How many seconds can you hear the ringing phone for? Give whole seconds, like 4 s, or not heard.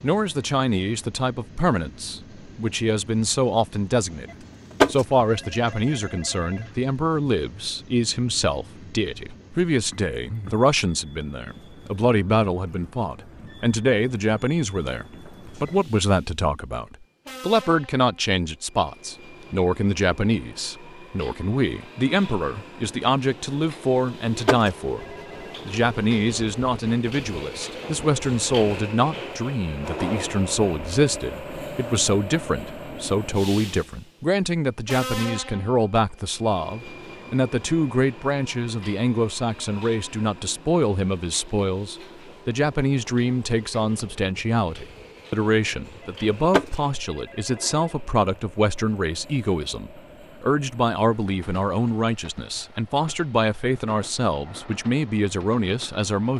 4 s.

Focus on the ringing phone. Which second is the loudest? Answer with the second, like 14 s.
5 s.